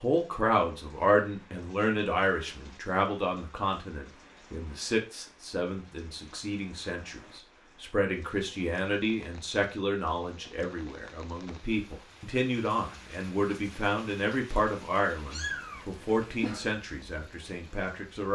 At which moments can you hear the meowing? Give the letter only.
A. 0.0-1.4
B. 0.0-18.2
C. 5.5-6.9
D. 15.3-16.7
D.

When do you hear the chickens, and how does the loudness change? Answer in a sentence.
The chickens can't be heard in this clip.